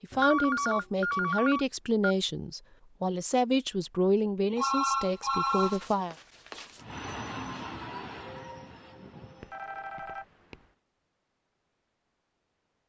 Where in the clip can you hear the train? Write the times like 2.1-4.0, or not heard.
6.8-9.6.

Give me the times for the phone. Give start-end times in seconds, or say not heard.
0.1-2.1, 4.5-6.8, 9.4-10.7.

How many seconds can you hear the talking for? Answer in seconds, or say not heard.
6 s.